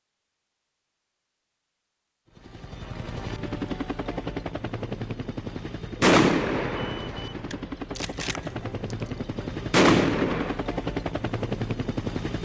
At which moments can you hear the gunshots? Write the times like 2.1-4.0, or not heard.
6.0-8.9, 9.7-10.6.